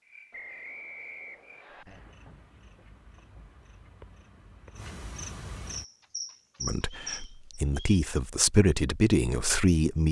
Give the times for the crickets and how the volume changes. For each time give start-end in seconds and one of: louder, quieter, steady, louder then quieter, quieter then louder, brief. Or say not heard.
0.0-7.6 louder.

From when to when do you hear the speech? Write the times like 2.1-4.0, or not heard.
6.6-10.0.